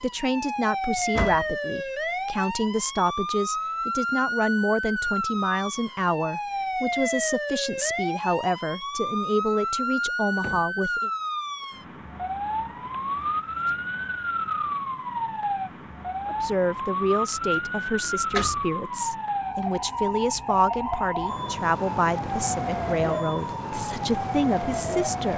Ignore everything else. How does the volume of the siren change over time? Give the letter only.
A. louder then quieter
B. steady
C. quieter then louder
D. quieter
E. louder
B.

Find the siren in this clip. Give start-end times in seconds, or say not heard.
0.0-25.3.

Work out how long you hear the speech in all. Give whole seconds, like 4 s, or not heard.
20 s.